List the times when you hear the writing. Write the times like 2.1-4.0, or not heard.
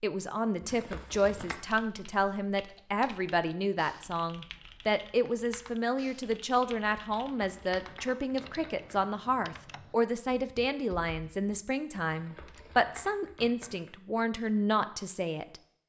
not heard.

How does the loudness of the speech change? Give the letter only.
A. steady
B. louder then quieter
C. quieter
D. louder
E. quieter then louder
A.